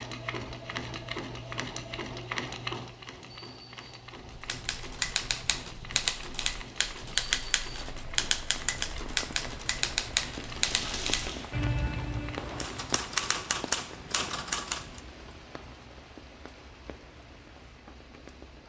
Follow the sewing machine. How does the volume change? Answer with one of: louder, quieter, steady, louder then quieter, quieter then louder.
quieter.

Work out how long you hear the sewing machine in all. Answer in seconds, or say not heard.
13 s.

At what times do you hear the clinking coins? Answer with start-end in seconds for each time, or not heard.
10.4-11.4.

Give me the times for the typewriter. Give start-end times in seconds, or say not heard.
4.3-15.0.